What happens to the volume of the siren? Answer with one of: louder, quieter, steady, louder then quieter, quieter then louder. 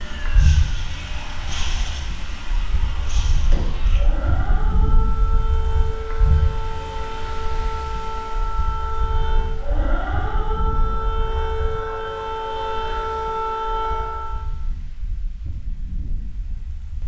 louder.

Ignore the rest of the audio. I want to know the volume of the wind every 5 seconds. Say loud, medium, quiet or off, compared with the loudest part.
loud, loud, medium, medium.